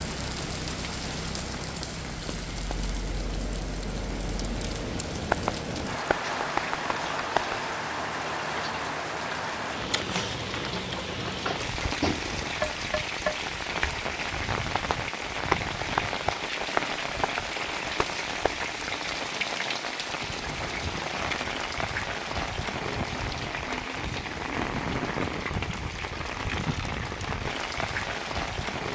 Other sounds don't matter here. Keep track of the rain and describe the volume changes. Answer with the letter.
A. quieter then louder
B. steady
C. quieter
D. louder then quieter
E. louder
B.